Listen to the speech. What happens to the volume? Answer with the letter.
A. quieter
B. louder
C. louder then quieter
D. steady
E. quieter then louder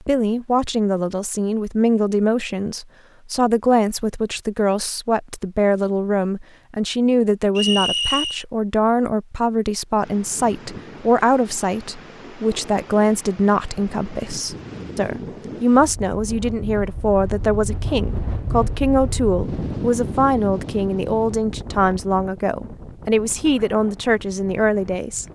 D.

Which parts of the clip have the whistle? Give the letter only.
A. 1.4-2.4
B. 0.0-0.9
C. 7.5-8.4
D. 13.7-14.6
C.